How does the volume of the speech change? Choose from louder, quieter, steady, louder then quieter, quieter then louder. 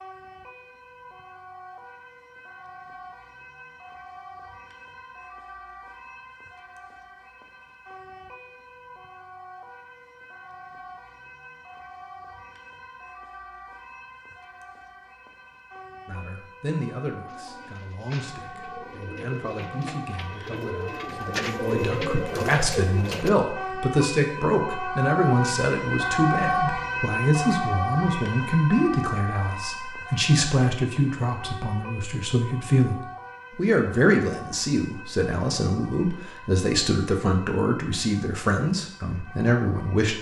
louder.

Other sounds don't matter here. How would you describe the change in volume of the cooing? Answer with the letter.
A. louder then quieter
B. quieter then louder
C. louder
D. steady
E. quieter
C.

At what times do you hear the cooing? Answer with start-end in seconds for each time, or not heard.
17.2-23.3.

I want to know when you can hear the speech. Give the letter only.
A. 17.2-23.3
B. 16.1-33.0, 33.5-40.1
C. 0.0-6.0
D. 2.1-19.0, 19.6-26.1
B.